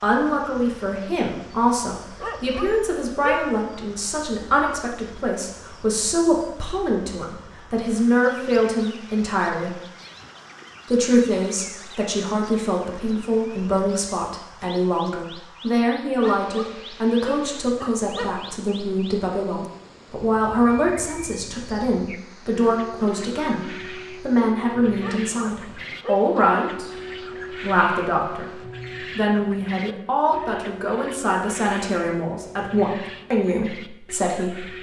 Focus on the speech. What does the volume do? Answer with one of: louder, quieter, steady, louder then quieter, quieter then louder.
steady.